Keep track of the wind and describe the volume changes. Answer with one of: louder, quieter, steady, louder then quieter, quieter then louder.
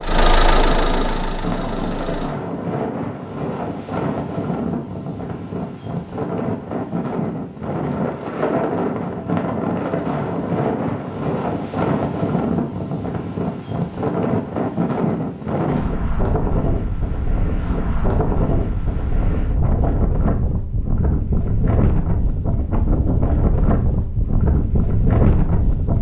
steady.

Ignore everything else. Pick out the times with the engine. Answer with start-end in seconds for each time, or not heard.
0.0-2.4.